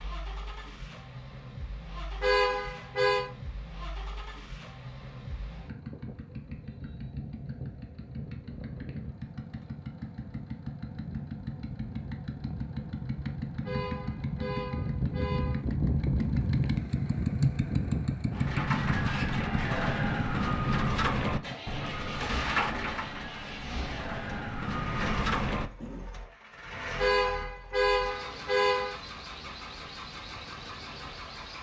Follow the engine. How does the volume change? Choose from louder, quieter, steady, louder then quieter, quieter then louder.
louder then quieter.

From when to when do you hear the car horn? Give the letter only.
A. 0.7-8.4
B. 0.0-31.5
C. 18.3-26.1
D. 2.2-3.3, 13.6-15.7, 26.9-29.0
D.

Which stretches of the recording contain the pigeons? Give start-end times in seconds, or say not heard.
18.3-26.1.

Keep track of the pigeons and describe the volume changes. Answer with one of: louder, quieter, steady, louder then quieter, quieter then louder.
quieter then louder.